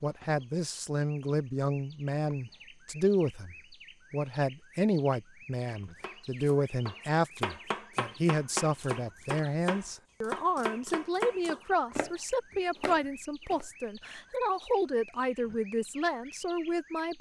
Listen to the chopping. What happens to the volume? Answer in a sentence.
The volume of the chopping stays about the same.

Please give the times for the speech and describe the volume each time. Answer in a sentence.
The speech can be heard from 0.0 to 17.1 s, at a steady volume.